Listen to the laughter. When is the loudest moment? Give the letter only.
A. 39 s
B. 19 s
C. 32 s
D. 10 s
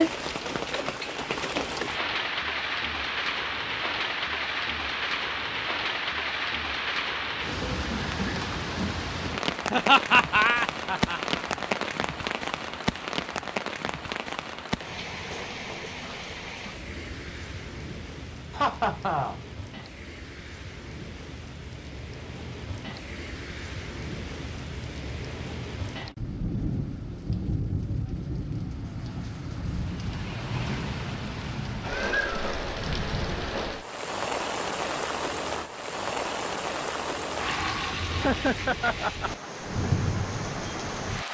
D.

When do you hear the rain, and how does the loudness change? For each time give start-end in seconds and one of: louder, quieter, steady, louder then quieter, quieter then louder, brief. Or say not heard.
0.0-41.3 quieter then louder.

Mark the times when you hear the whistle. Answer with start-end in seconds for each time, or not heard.
not heard.